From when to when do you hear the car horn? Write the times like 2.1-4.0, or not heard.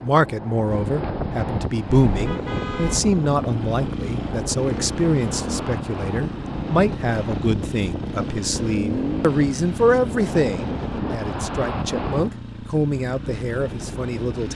2.0-3.0.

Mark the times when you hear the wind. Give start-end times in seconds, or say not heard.
0.0-12.4.